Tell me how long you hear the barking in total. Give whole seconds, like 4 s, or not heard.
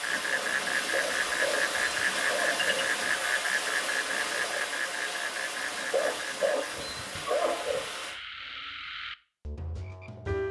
4 s.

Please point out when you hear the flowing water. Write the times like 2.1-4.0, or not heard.
0.0-8.2.